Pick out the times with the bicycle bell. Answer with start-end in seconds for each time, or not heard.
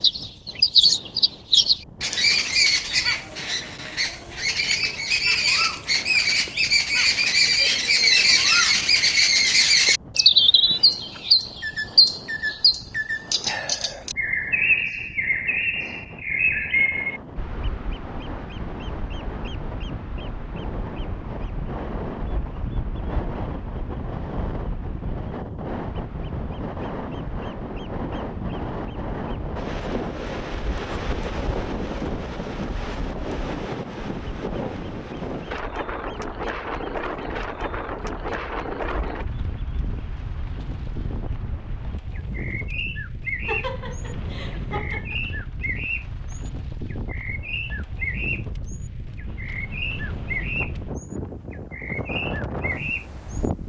not heard.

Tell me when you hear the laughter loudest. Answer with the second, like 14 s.
44 s.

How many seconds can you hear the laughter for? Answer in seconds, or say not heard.
2 s.